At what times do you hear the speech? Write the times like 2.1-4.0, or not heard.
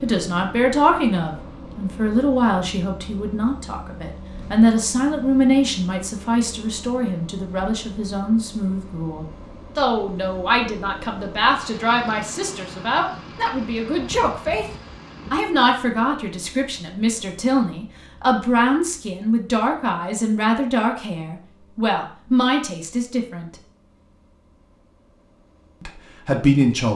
0.0-14.7, 15.3-23.5, 25.8-26.9.